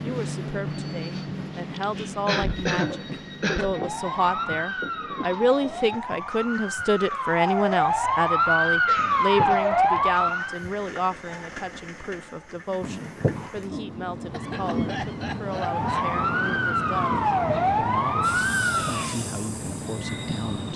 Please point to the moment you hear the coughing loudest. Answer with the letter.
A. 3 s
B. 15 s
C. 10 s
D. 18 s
A.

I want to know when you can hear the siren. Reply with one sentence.
You can hear the siren from 3.8 to 10.7 s and from 15.5 to 19.2 s.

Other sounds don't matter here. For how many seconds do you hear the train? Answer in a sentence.
The train can be heard for 21 seconds in total.